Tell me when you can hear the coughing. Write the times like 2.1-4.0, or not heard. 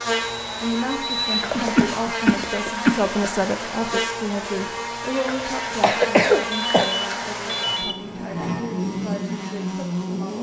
1.5-3.1, 5.8-6.8.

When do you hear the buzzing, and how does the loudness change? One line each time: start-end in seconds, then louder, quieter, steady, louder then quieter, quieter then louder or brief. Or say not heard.
0.0-10.3 steady.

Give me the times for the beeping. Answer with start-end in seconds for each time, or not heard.
0.2-1.2, 6.5-8.0.